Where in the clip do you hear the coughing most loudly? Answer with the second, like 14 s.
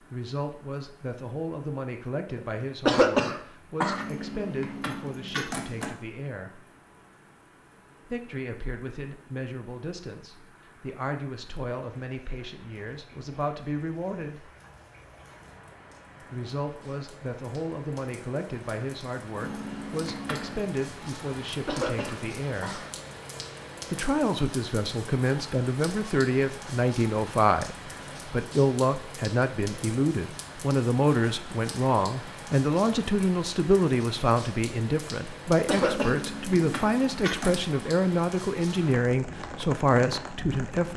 3 s.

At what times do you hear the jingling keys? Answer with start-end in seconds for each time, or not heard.
3.9-5.9, 19.4-20.7, 35.8-37.6.